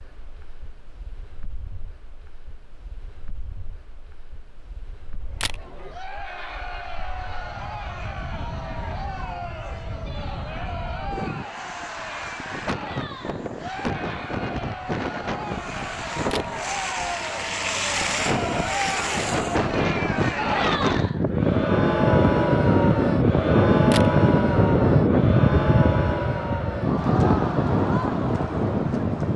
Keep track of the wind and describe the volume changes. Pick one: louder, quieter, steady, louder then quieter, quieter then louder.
louder.